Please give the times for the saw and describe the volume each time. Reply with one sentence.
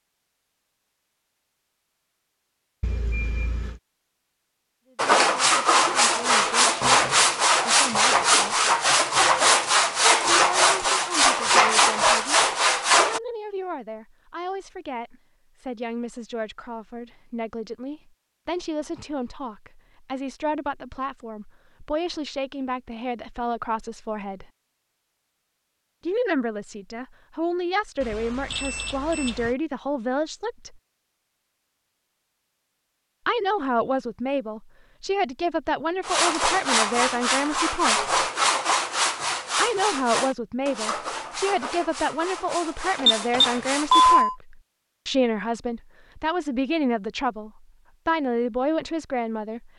The saw can be heard from 5.0 to 13.2 s, at a steady volume; and from 36.0 to 44.2 s, getting quieter.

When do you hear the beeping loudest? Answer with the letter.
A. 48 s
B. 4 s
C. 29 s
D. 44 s
D.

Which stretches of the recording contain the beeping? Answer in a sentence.
You can hear the beeping from 2.8 to 3.8 s, from 28.0 to 29.6 s and from 43.0 to 44.4 s.